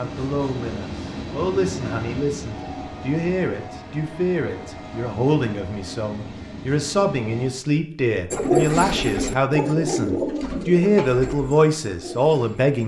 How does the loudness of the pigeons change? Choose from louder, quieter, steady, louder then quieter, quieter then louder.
quieter.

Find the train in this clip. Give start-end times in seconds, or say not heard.
0.0-7.5.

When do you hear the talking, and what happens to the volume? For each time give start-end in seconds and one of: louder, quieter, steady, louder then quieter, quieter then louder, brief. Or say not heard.
0.0-12.8 louder.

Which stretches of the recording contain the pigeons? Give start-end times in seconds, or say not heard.
8.3-12.8.